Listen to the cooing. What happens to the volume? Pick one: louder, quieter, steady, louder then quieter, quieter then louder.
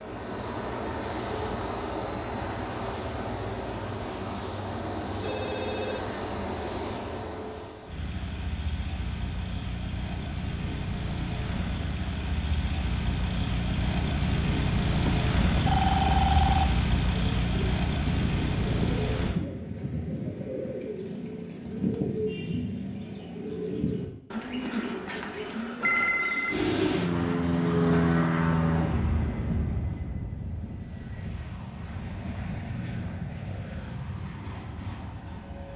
quieter.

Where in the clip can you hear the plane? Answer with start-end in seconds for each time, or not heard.
0.0-19.4, 26.4-35.7.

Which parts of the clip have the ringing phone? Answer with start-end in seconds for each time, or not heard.
5.2-6.2, 15.1-16.8, 25.8-26.6.